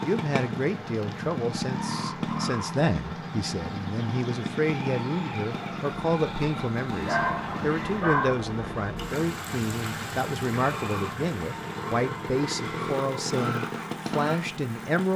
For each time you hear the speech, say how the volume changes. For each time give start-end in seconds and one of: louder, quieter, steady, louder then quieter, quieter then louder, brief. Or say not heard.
0.0-15.1 steady.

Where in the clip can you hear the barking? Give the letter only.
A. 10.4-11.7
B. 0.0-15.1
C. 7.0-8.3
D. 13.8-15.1
C.